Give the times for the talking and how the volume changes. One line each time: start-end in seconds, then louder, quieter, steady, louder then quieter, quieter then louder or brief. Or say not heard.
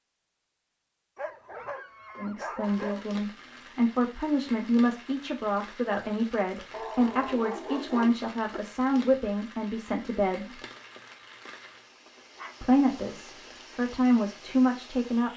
2.1-10.6 steady
12.6-15.3 brief.